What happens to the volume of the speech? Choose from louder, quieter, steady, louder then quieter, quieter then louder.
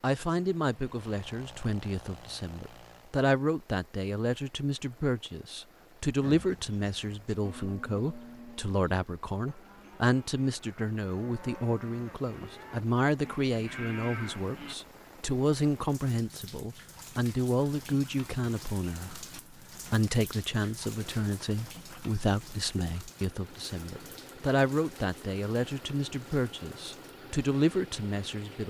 steady.